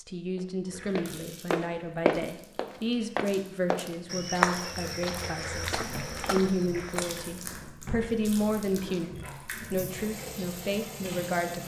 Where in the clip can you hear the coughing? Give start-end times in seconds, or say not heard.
not heard.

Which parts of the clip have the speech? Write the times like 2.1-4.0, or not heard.
0.0-11.6.